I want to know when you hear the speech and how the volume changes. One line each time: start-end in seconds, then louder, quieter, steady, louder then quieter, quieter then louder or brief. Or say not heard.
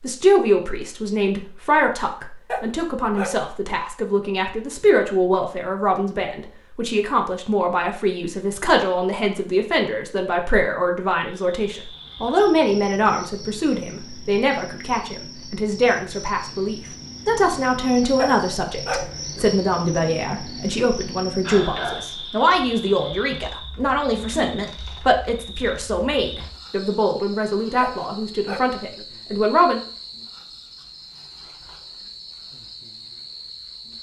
0.0-29.8 steady.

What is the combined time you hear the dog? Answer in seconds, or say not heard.
4 s.